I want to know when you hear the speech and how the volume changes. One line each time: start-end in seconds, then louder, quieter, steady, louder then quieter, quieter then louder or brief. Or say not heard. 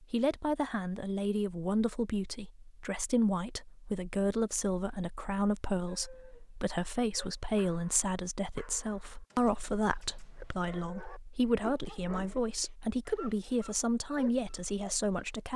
0.0-15.5 steady.